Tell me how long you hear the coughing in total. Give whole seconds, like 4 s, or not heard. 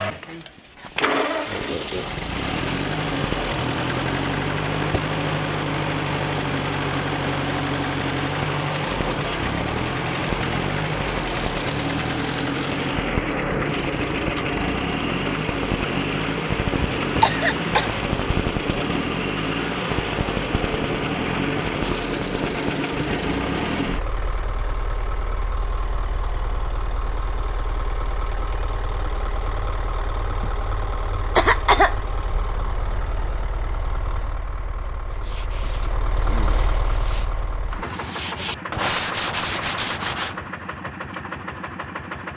2 s.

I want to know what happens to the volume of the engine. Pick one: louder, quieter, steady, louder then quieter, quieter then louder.
quieter.